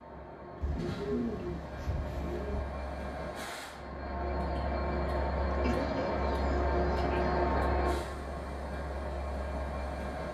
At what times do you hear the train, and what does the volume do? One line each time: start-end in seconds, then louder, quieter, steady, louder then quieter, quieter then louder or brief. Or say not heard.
0.0-10.3 louder then quieter.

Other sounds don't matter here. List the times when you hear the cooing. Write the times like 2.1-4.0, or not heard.
0.6-2.6, 5.6-7.5.